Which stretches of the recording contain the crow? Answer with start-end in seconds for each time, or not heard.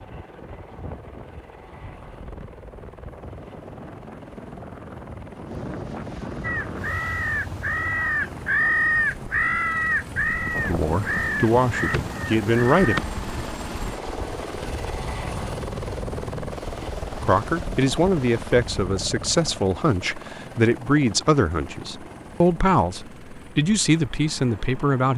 6.4-13.1.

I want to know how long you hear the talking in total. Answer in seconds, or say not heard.
10 s.